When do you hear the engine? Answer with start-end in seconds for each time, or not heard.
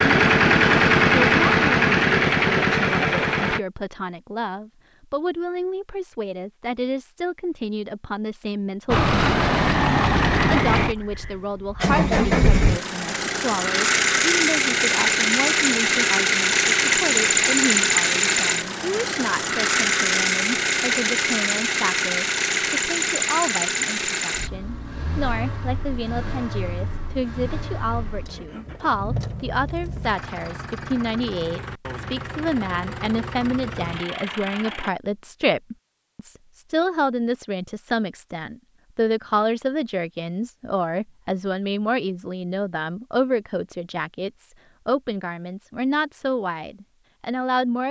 0.0-3.6, 8.8-34.9.